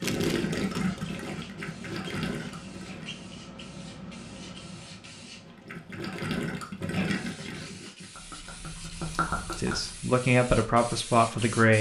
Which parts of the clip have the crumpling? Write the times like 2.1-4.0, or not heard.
0.0-0.4.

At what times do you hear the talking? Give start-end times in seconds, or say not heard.
9.6-11.7.